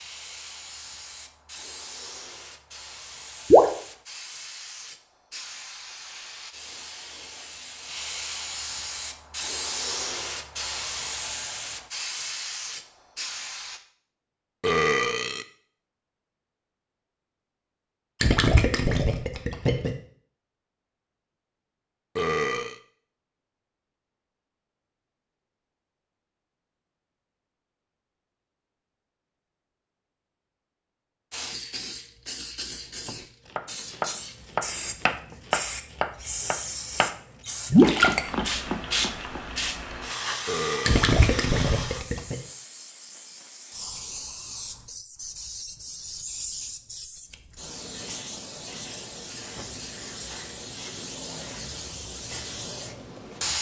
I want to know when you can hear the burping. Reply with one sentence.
You can hear the burping from 14.6 to 15.4 s, from 22.1 to 22.8 s and from 40.5 to 41.0 s.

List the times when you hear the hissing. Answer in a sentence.
The hissing can be heard from 0.0 to 13.8 s and from 31.3 to 53.5 s.